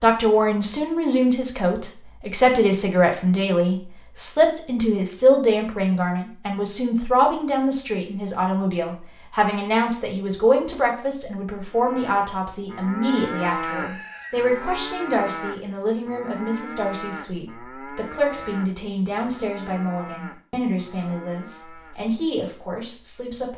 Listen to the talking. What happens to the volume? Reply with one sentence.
The loudness of the talking goes down.